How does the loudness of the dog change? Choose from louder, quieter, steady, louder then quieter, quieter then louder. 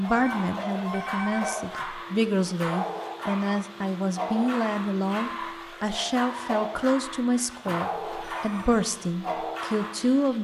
steady.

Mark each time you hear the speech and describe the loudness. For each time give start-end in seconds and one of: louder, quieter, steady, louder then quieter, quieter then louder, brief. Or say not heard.
0.0-10.3 steady.